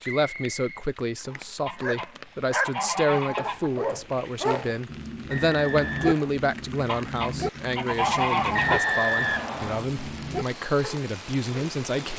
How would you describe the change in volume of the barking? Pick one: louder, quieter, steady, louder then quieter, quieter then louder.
quieter.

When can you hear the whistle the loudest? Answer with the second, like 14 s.
9 s.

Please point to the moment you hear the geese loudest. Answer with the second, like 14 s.
8 s.